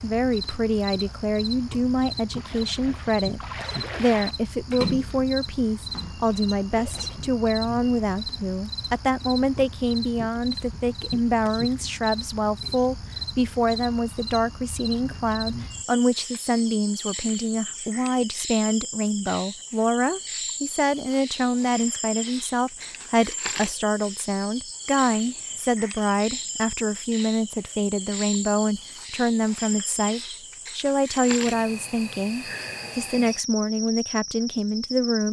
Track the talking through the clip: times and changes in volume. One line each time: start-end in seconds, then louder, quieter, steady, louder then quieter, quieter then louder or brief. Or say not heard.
0.0-35.2 steady.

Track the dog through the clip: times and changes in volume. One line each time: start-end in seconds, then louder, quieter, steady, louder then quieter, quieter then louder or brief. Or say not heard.
not heard.